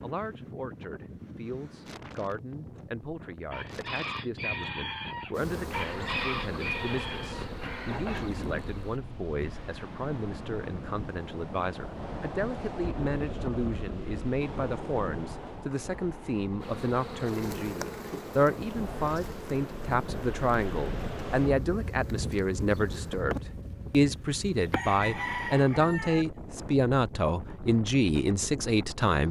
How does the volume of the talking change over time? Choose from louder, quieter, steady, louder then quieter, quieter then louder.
louder.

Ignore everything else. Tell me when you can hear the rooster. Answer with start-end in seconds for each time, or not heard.
3.5-7.5, 24.7-26.2.